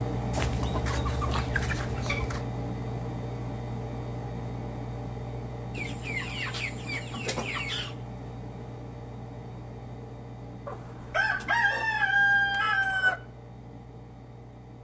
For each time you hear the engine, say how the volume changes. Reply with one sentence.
The engine can be heard from 0.0 to 14.7 s, getting quieter.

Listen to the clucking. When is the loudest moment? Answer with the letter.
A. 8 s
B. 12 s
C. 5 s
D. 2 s
B.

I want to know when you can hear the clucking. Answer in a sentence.
The clucking can be heard from 0.3 to 2.5 s, from 5.8 to 7.9 s and from 10.7 to 13.2 s.